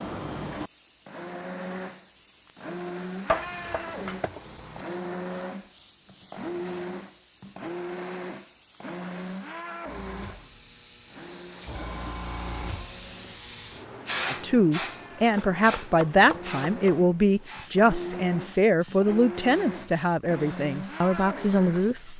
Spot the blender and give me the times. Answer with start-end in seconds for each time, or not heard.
0.0-22.1.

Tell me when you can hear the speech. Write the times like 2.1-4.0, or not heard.
14.3-22.1.